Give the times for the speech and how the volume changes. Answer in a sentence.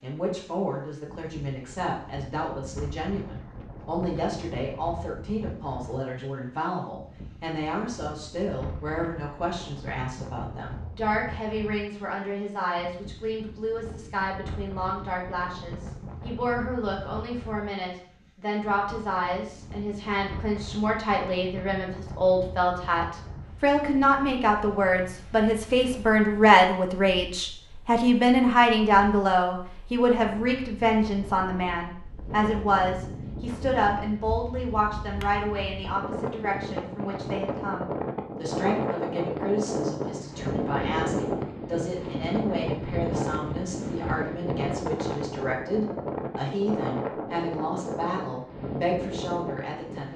The speech can be heard from 0.0 to 50.1 s, getting louder then quieter.